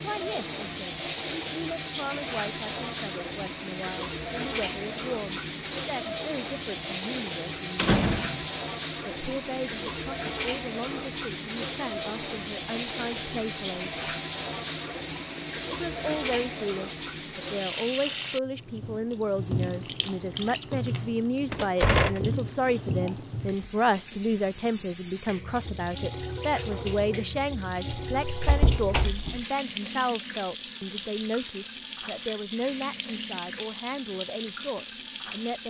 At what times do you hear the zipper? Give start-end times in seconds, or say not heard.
not heard.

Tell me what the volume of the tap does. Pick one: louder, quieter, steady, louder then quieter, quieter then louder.
steady.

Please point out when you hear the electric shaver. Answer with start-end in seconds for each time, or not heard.
not heard.